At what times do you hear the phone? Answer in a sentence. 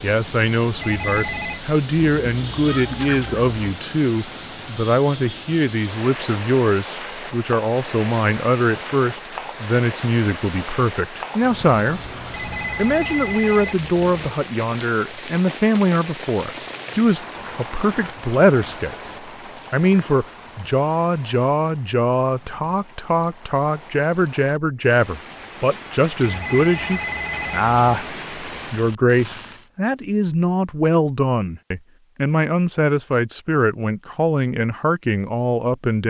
You can hear the phone from 0.8 to 1.6 s, from 12.3 to 14.3 s and from 26.2 to 28.1 s.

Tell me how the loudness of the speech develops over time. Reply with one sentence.
The volume of the speech stays about the same.